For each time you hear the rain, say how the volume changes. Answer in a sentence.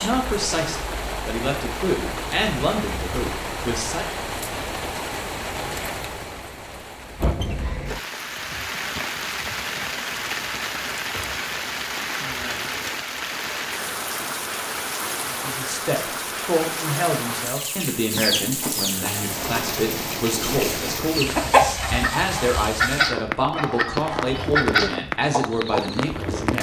The rain can be heard from 0.0 to 26.5 s, at a steady volume.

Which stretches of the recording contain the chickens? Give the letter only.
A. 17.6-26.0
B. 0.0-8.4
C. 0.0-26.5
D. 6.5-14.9
A.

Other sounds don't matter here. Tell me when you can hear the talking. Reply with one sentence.
You can hear the talking from 0.0 to 4.2 s and from 15.3 to 26.5 s.